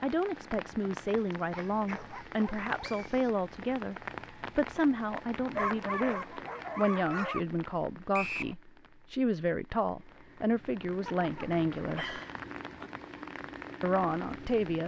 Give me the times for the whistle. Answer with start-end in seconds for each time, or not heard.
2.8-3.2, 8.1-8.6.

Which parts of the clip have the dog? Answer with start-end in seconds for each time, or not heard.
1.3-3.3, 5.5-7.4, 11.1-12.9.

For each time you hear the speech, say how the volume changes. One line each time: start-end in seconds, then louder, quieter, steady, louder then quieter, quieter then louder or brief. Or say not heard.
0.0-12.2 steady
13.8-14.8 brief.